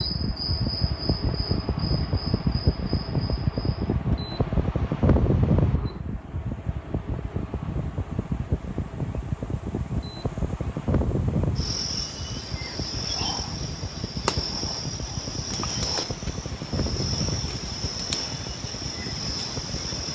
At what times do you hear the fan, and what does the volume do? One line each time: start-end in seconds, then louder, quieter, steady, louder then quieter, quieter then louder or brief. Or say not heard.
0.0-20.0 quieter.